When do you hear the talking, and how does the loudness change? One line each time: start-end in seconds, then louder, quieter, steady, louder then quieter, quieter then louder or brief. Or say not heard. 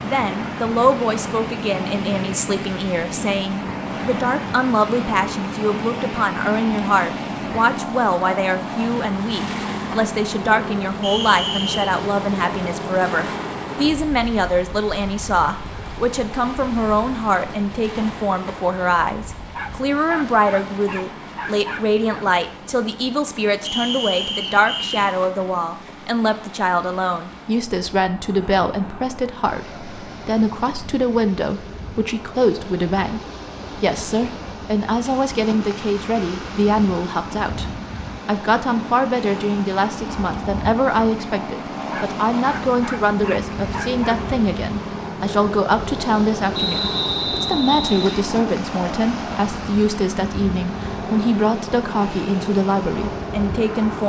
0.0-54.0 steady.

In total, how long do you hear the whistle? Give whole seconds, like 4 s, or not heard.
4 s.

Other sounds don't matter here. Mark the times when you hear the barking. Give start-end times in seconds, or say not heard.
19.5-22.2, 41.9-44.0.